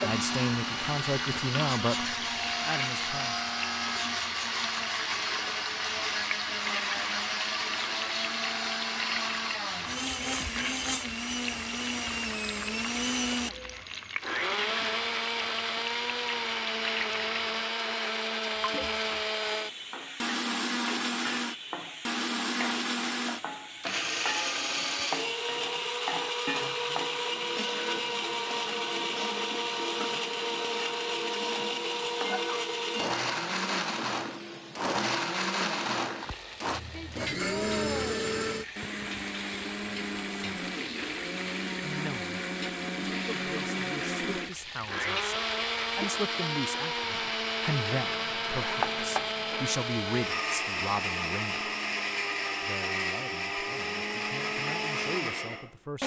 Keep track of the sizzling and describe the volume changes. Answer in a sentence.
The loudness of the sizzling stays about the same.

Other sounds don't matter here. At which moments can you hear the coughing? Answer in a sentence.
The coughing can't be heard in this clip.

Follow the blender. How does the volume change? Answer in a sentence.
The loudness of the blender stays about the same.